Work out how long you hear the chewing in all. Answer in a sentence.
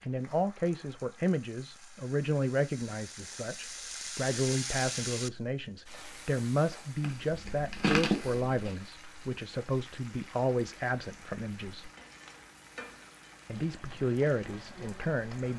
The chewing can be heard for 2 seconds in total.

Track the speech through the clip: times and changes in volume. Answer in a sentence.
You can hear the speech from 0.0 to 11.9 s, at a steady volume; and briefly from 13.4 to 15.5 s.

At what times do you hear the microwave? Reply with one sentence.
The microwave can't be heard in this clip.